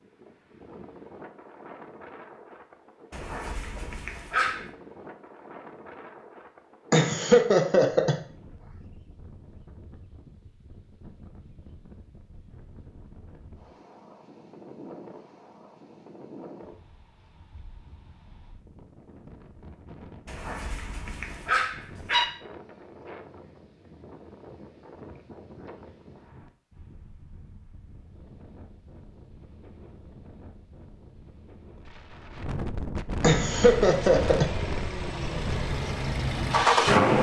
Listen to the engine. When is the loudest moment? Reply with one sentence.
The volume of the engine peaks at 37 seconds.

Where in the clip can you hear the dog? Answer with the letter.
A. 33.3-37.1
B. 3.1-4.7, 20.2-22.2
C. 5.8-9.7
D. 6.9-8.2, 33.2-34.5
B.